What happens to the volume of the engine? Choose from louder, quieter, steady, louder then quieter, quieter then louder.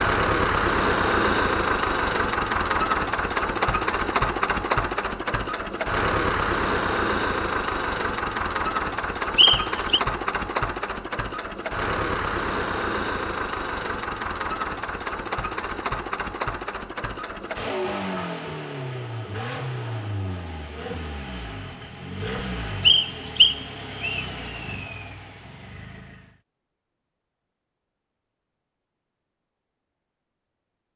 quieter.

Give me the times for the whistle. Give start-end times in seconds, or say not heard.
9.3-10.0, 22.9-24.2.